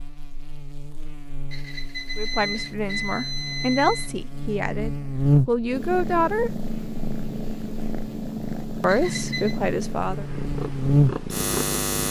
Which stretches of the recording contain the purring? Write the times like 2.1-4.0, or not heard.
2.5-12.0.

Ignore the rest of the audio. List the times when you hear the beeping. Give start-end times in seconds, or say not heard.
1.5-4.1, 8.8-9.6.